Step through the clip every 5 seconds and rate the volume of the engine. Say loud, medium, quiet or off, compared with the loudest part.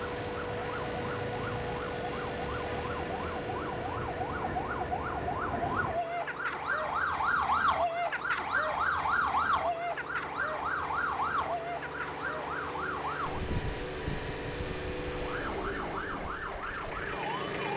loud, medium, loud, loud.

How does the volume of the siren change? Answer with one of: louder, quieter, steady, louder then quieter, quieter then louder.
louder then quieter.